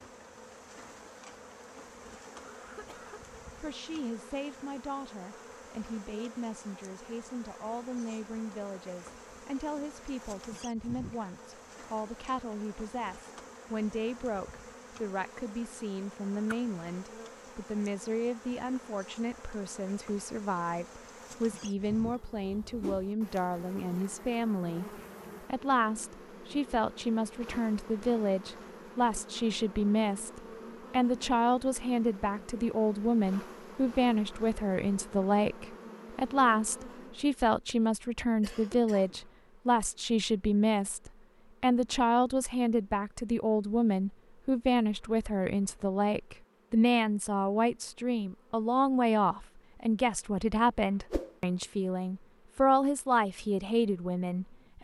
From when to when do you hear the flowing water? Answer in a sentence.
You can't hear the flowing water here.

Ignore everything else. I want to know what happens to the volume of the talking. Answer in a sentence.
The loudness of the talking goes up.